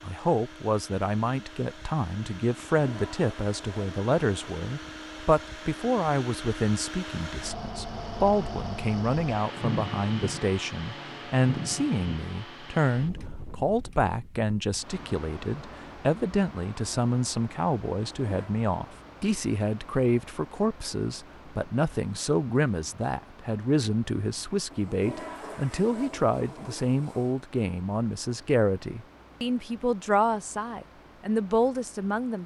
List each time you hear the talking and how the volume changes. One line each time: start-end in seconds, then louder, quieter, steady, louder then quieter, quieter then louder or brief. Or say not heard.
0.0-32.4 steady.